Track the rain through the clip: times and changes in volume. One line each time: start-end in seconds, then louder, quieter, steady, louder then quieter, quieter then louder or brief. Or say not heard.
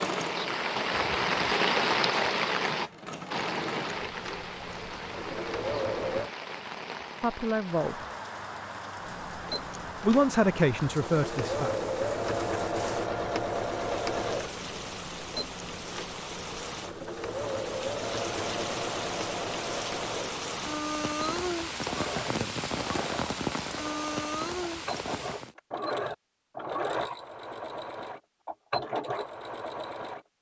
0.0-25.6 quieter then louder.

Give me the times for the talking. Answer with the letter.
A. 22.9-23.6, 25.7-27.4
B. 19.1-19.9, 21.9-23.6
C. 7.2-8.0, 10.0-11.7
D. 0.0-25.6
C.